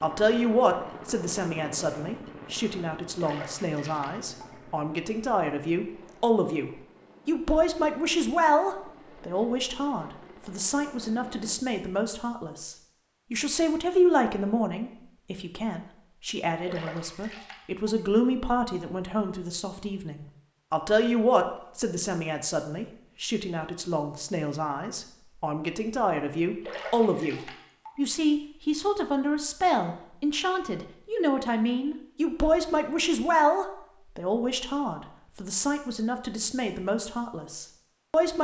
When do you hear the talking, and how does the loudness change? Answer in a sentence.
You can hear the talking from 0.0 to 38.3 s, at a steady volume.